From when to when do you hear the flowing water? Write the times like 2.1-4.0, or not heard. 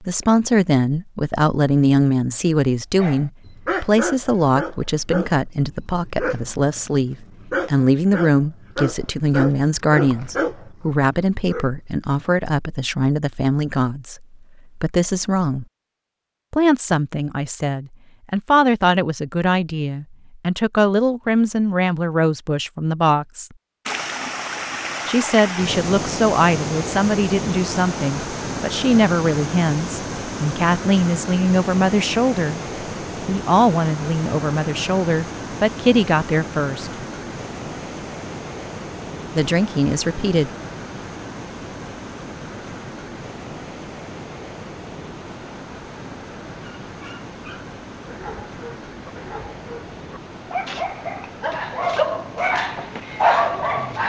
23.9-54.0.